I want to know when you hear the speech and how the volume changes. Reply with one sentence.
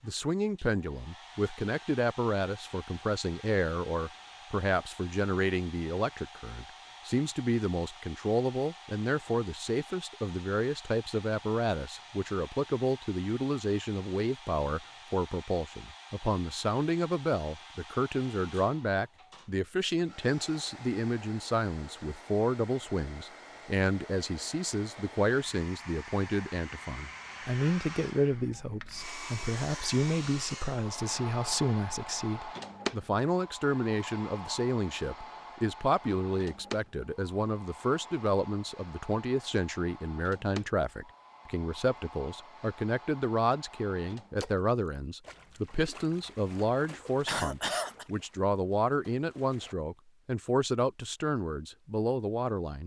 The speech can be heard from 0.0 to 52.8 s, at a steady volume.